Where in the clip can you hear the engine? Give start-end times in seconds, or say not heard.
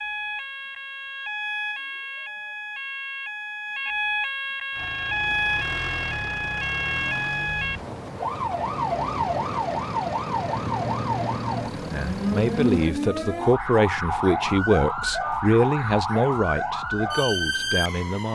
4.7-12.9.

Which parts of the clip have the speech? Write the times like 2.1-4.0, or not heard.
11.9-18.2.